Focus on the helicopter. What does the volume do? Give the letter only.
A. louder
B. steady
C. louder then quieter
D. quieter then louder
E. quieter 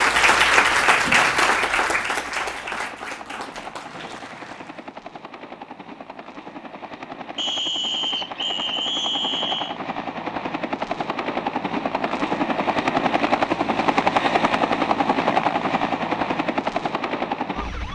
A.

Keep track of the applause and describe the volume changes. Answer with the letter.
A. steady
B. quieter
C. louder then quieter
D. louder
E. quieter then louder
B.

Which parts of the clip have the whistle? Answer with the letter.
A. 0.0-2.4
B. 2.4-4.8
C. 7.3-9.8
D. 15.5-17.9
C.